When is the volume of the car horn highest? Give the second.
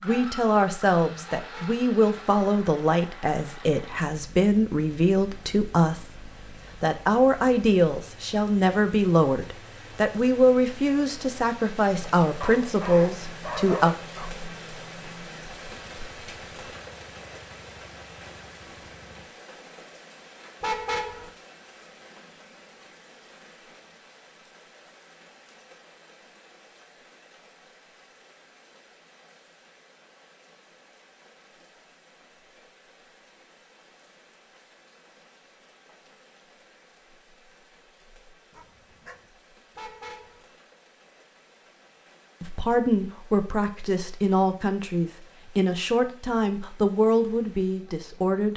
21 s.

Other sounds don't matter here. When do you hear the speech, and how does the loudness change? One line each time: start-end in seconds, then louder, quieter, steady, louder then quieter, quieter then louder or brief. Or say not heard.
0.0-13.9 steady
42.4-48.5 steady.